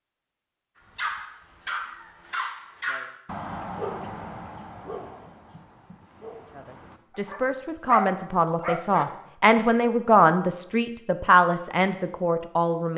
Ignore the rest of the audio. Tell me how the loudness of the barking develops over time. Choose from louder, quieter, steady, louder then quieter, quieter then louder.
quieter then louder.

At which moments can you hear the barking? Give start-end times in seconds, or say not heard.
0.9-9.1.